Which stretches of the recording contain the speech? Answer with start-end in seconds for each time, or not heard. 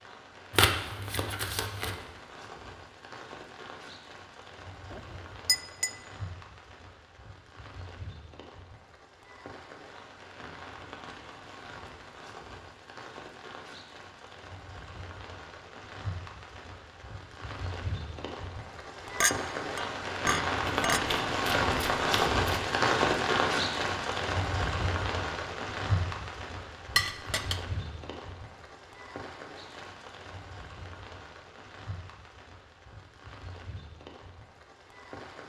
not heard.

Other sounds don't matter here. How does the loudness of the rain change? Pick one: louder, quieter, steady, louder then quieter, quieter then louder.
louder then quieter.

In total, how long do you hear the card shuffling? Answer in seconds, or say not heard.
3 s.